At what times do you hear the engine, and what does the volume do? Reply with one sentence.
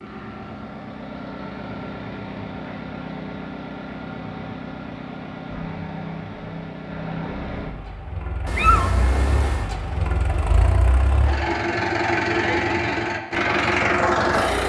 The engine can be heard from 0.0 to 14.6 s, getting louder.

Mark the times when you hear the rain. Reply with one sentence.
You can't hear the rain here.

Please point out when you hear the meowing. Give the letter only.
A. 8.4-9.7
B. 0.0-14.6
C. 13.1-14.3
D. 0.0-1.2
A.